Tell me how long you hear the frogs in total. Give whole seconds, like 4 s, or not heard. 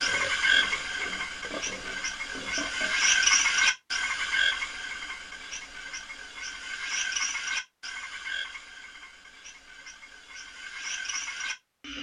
12 s.